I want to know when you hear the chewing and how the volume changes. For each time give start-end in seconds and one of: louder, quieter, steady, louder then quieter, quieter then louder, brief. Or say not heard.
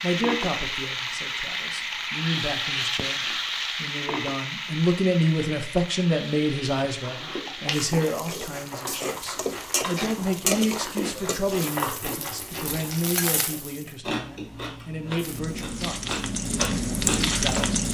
7.0-17.6 steady.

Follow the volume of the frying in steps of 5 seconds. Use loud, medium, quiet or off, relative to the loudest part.
loud, medium, medium, loud.